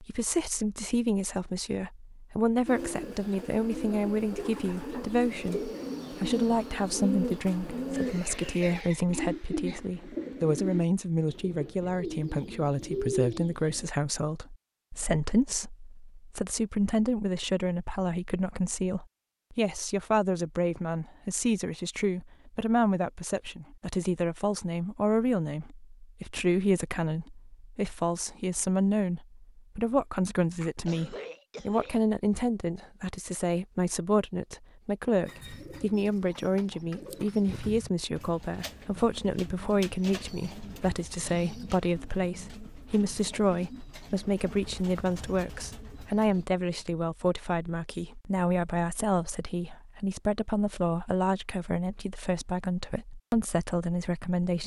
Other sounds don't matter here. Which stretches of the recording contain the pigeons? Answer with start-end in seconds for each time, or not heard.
2.6-13.9, 35.2-46.5.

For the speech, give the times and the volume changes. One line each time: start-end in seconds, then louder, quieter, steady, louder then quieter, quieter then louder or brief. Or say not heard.
0.0-54.6 steady.